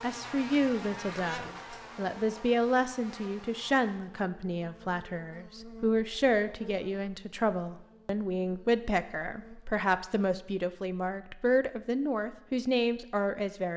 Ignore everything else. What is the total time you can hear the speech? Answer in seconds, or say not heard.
14 s.